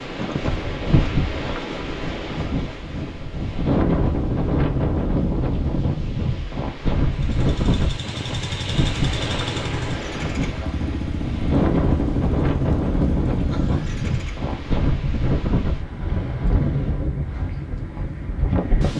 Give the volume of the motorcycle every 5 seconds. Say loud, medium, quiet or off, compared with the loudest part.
off, loud, loud, off.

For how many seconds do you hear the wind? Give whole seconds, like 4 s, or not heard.
19 s.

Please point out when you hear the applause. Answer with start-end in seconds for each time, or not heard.
not heard.